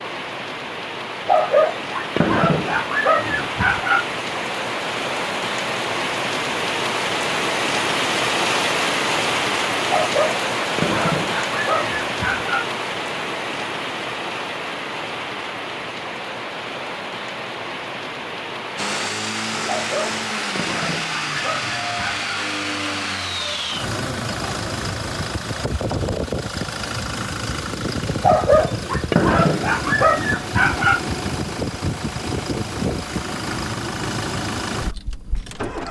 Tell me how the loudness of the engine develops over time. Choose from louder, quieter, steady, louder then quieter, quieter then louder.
steady.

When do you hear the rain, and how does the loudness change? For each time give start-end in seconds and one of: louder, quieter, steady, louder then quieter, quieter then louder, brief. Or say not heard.
0.0-19.1 louder then quieter.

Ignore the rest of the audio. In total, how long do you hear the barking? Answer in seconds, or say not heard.
11 s.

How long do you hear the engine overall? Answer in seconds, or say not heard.
17 s.